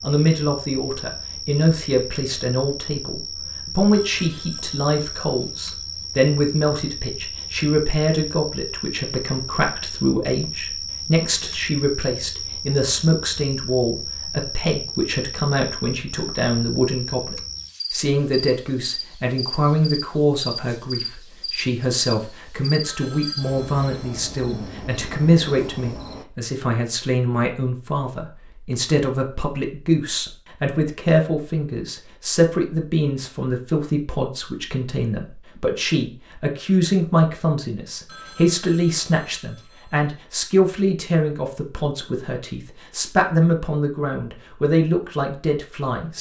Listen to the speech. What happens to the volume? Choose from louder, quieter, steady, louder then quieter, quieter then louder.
steady.